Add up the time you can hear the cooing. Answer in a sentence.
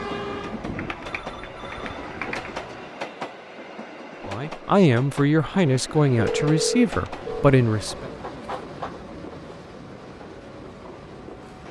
You can hear the cooing for 5 seconds altogether.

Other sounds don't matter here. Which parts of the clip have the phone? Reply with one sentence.
You can hear the phone from 0.8 to 2.9 s and from 6.2 to 7.5 s.